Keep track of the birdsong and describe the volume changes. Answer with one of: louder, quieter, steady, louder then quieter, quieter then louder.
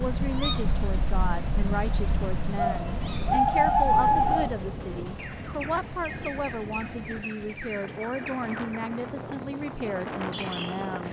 louder then quieter.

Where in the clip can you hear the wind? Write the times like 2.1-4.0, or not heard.
2.9-11.0.